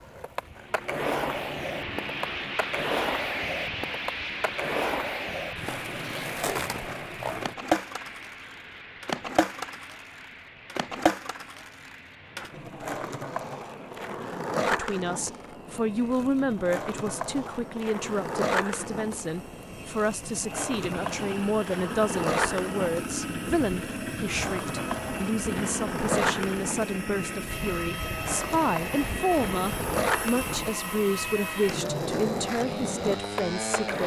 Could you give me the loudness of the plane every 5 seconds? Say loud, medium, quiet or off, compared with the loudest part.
loud, medium, quiet, quiet, loud, loud, loud.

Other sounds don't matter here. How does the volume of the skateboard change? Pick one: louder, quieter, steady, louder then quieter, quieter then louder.
steady.